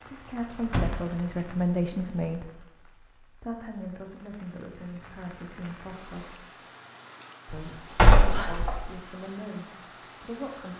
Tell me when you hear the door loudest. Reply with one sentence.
The volume of the door peaks at 8 seconds.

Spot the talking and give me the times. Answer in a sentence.
The talking can be heard from 0.0 to 6.4 s and from 7.5 to 10.7 s.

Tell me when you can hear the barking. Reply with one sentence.
The barking can't be heard in this clip.